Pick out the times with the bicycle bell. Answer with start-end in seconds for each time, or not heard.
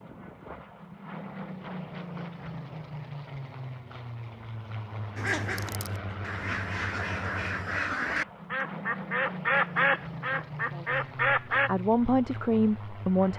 not heard.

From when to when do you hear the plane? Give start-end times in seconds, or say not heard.
0.0-13.3.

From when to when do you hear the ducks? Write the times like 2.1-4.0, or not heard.
5.2-11.7.